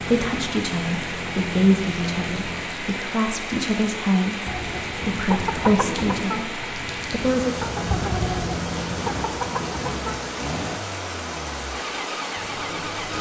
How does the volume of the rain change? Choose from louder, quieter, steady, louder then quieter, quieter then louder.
steady.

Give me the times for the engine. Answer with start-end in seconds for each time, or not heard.
0.0-2.8, 7.2-13.1.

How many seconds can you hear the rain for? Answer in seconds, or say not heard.
13 s.